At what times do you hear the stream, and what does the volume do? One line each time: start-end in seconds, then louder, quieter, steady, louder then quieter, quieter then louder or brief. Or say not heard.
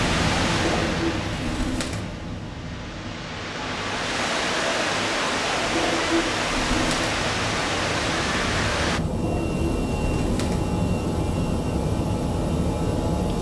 0.0-9.0 quieter then louder.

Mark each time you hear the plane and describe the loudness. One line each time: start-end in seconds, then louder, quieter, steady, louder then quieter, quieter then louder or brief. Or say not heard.
0.0-13.3 quieter then louder.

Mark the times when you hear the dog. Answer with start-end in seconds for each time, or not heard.
not heard.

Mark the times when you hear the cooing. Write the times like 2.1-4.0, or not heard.
0.5-2.0, 5.6-7.2, 9.1-10.6.